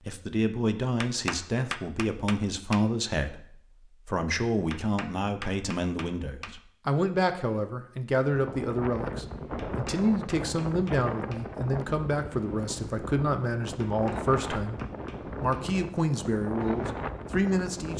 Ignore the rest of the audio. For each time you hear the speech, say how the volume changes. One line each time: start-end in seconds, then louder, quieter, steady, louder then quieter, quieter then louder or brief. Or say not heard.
0.0-17.9 steady.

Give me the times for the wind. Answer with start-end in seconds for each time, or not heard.
8.3-17.9.